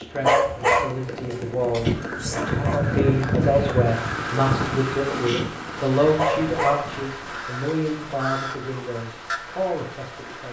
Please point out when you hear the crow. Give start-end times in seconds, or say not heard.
1.9-9.4.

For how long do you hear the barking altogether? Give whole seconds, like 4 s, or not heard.
4 s.